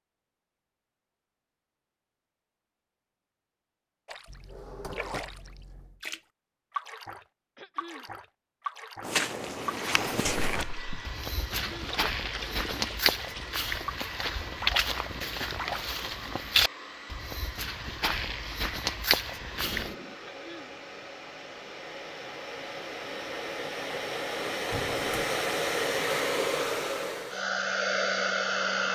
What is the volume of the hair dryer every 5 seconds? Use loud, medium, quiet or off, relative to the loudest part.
off, off, quiet, quiet, medium, loud.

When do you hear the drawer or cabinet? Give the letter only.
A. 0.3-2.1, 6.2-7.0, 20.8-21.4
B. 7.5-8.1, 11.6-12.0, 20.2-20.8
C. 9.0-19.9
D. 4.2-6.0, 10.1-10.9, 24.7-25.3
D.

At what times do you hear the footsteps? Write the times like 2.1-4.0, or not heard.
9.0-19.9.